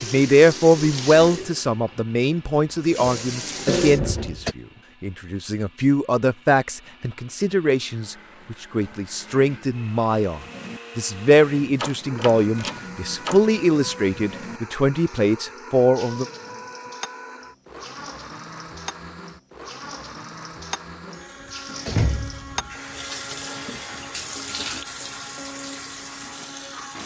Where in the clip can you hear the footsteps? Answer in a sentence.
You can't hear the footsteps here.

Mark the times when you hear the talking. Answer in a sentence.
You can hear the talking from 0.0 to 16.2 s.